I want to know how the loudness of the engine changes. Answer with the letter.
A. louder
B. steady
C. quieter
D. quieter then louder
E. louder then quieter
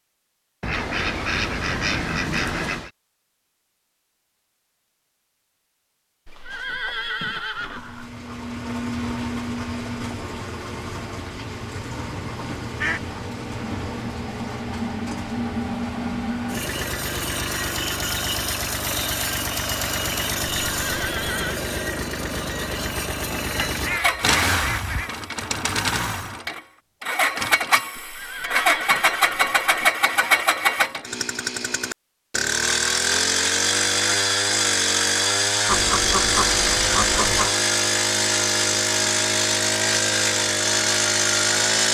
A.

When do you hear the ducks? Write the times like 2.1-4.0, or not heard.
0.6-2.9, 12.3-13.2, 23.6-25.1, 35.6-37.5.